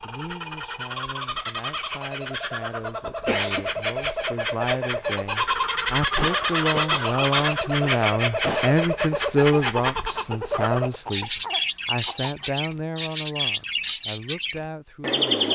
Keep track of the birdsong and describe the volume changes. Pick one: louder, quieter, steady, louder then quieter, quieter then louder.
louder.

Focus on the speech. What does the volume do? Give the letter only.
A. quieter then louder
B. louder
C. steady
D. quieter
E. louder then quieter
E.